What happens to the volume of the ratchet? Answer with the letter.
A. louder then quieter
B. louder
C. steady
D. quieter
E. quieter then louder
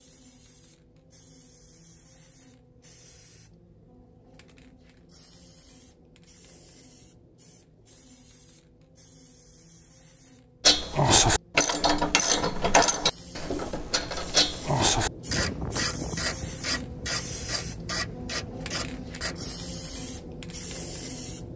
D.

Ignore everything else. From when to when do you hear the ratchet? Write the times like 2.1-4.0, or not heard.
10.7-19.6.